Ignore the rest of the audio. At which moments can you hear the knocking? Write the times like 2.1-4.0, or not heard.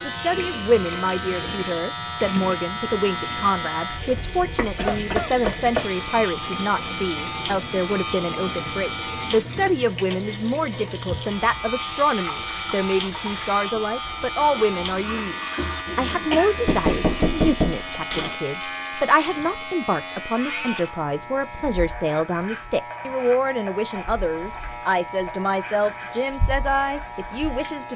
4.5-5.8, 16.6-18.4.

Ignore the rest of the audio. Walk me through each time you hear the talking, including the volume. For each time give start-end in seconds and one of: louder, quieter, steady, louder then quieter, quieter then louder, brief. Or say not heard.
0.1-15.3 steady
15.9-27.9 steady.